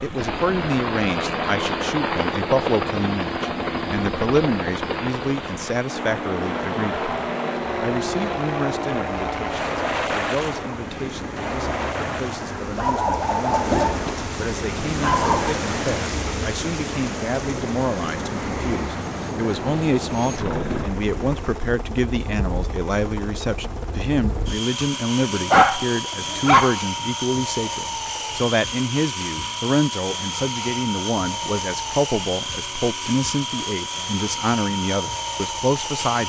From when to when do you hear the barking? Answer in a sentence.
You can hear the barking from 12.8 to 15.6 s and from 25.2 to 26.8 s.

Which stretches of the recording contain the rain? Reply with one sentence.
The rain can be heard from 0.0 to 21.6 s.